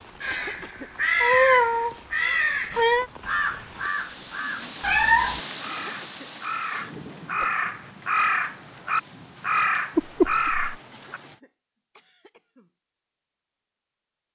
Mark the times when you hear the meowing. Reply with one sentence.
The meowing can be heard from 1.2 to 3.0 s, from 4.8 to 5.4 s and from 9.9 to 10.6 s.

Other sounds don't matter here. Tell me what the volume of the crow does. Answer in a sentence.
The volume of the crow goes down, then up.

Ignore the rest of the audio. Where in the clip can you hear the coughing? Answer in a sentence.
The coughing can be heard from 0.3 to 0.9 s, from 5.7 to 6.9 s and from 10.9 to 12.7 s.